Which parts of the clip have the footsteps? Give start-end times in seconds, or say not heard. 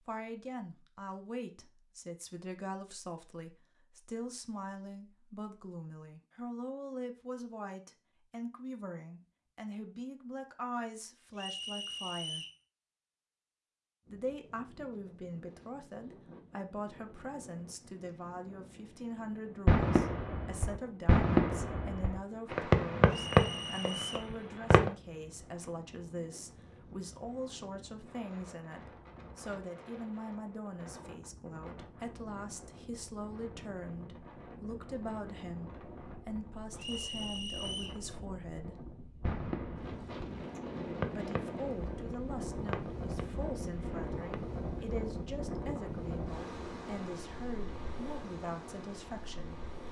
not heard.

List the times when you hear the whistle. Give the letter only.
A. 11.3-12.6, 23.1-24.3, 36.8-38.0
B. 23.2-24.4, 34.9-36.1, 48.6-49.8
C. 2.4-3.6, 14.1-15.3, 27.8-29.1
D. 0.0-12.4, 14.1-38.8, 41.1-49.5
A.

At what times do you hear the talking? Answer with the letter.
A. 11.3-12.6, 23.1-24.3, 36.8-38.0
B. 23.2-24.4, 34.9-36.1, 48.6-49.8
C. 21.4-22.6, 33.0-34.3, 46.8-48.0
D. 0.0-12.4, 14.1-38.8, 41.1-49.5
D.